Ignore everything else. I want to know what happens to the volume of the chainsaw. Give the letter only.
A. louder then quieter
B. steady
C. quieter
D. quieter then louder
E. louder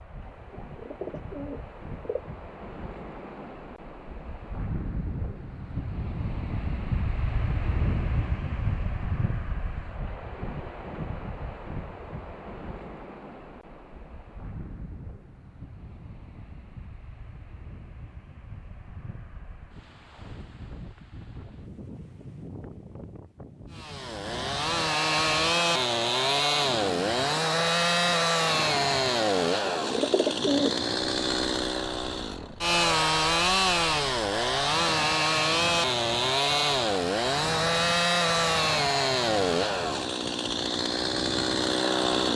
B.